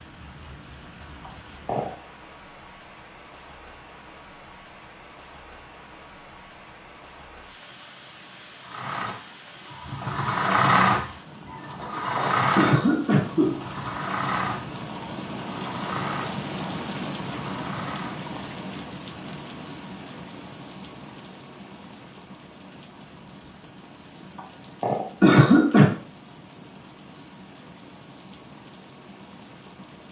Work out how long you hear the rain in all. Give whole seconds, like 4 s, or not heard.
30 s.